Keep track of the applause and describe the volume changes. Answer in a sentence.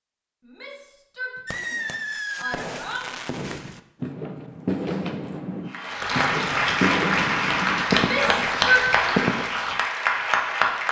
The loudness of the applause stays about the same.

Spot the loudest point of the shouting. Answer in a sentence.
The volume of the shouting peaks at 9 seconds.